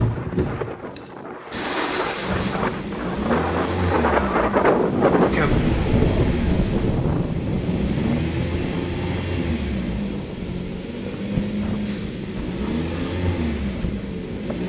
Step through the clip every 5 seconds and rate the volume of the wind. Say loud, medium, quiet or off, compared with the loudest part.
loud, loud, medium.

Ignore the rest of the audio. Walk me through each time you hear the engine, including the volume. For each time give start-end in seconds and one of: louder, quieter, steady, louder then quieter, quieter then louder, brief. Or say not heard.
0.0-14.6 steady.